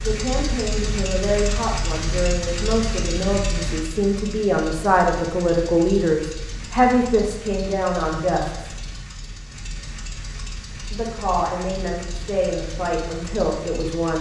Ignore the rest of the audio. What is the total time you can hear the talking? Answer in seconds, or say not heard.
12 s.